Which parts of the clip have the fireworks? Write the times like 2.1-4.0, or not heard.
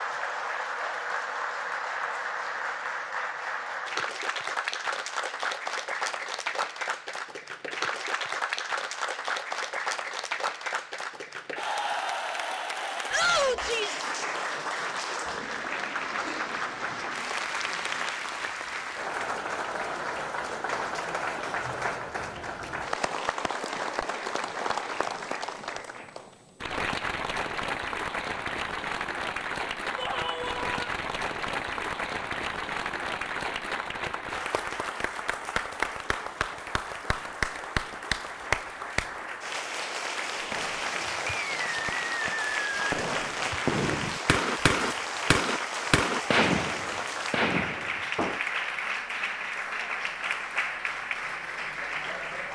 40.4-48.4.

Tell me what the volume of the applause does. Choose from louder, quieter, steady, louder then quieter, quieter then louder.
steady.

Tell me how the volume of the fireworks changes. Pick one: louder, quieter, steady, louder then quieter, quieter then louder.
louder then quieter.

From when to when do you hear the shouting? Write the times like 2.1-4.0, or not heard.
13.1-14.0, 29.9-30.9.